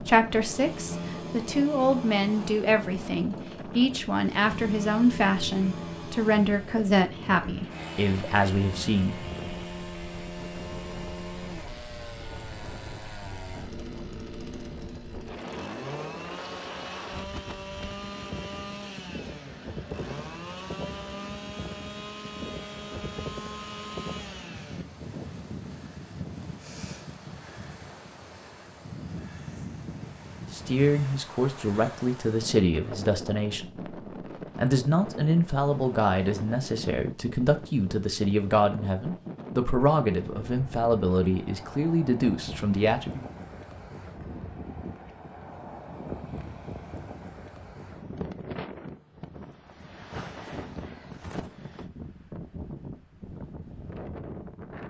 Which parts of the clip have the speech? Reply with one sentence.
The speech can be heard from 0.0 to 9.2 s, from 30.5 to 33.9 s and from 34.5 to 43.2 s.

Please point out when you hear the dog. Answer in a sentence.
You can't hear the dog here.